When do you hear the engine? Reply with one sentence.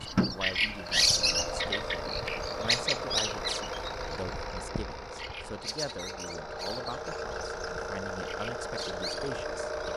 You can hear the engine from 0.0 to 9.9 s.